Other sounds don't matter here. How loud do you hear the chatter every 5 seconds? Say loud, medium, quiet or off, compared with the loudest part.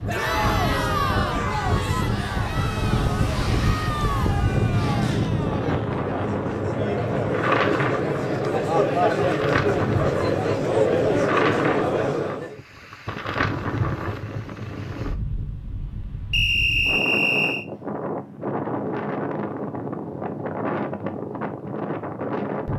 medium, loud, loud, off, off.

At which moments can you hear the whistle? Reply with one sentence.
The whistle can be heard from 16.3 to 17.6 s.